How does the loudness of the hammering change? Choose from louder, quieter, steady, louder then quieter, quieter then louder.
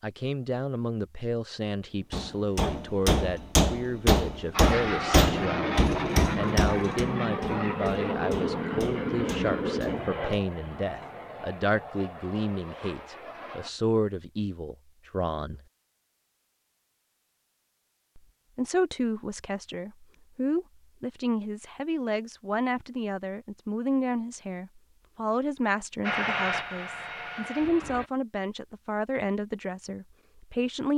quieter.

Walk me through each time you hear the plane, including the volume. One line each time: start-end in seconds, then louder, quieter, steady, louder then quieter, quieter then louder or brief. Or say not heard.
4.5-13.7 quieter
26.0-28.1 brief.